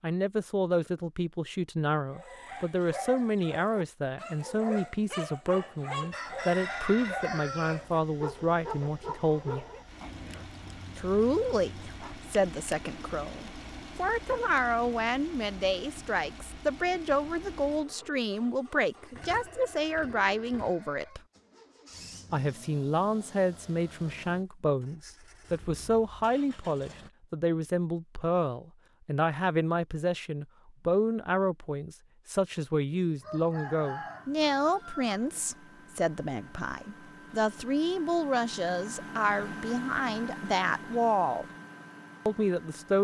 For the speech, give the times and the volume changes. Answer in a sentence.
You can hear the speech from 0.0 to 9.7 s, at a steady volume; from 10.9 to 21.2 s, at a steady volume; from 22.3 to 41.5 s, at a steady volume; and briefly from 42.2 to 42.9 s.